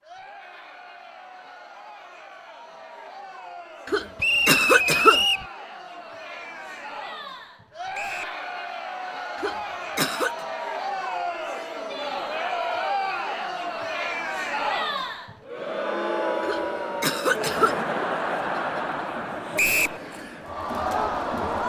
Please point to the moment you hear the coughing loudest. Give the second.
5 s.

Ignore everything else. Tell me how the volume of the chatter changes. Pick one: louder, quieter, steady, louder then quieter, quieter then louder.
louder.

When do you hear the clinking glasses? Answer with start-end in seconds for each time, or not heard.
not heard.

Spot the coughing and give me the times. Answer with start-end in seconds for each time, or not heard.
3.9-5.2, 9.3-10.3, 16.4-17.8.